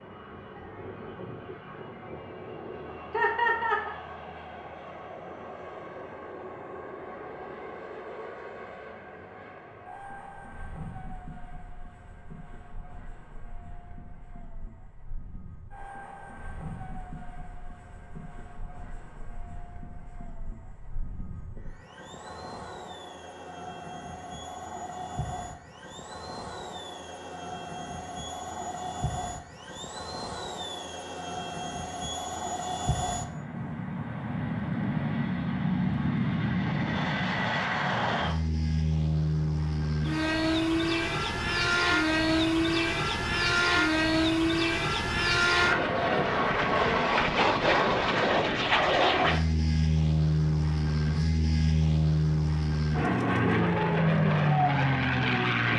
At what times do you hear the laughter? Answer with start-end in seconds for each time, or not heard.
3.1-4.0.